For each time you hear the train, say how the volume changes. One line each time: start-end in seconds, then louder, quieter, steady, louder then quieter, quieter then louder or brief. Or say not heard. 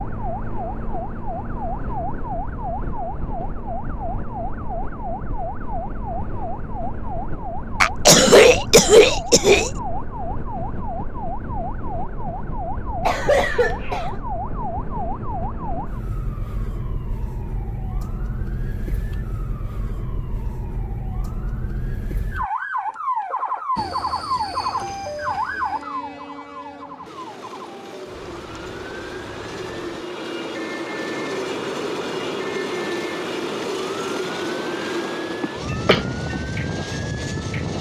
23.8-37.7 louder.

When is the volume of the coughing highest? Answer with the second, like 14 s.
8 s.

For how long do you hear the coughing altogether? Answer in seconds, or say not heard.
4 s.